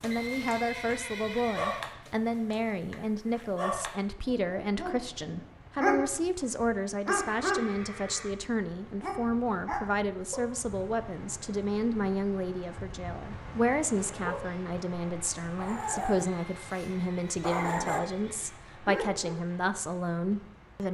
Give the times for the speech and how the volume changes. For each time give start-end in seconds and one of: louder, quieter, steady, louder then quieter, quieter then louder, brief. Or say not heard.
0.0-20.8 steady.